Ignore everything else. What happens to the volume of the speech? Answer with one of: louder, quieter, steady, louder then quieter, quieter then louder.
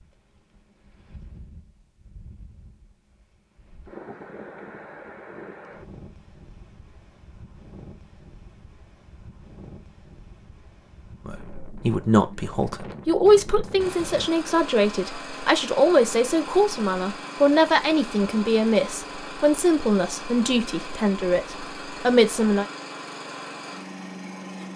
steady.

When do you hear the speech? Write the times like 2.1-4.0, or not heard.
11.2-22.6.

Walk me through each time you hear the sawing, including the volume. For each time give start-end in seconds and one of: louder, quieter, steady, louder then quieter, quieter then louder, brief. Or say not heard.
not heard.